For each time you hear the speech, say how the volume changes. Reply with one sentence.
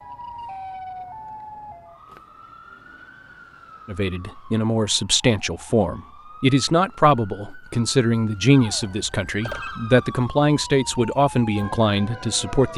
You can hear the speech from 3.9 to 12.7 s, at a steady volume.